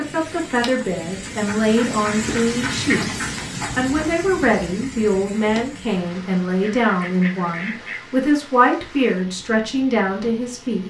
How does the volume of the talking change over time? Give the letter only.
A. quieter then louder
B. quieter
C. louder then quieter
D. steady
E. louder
D.